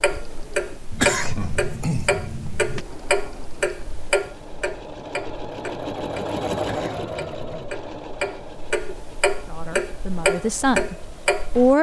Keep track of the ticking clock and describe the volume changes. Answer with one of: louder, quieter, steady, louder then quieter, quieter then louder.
quieter then louder.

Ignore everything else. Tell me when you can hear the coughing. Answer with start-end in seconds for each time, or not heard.
0.9-2.9, 6.5-7.6.